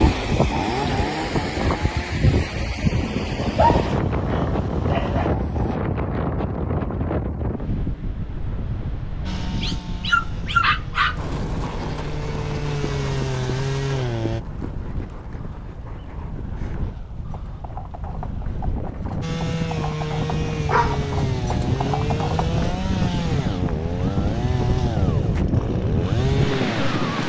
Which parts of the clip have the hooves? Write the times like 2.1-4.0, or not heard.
11.1-22.8.